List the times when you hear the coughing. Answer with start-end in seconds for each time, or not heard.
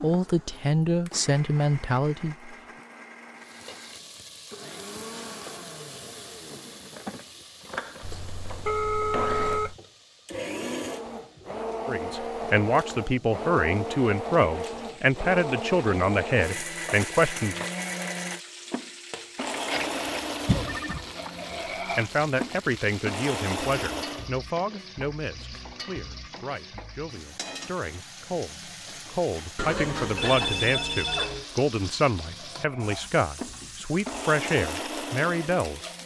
20.4-21.1.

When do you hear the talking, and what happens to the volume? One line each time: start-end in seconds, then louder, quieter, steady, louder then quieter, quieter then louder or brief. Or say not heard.
0.0-2.5 brief
11.8-17.6 steady
21.5-35.9 quieter then louder.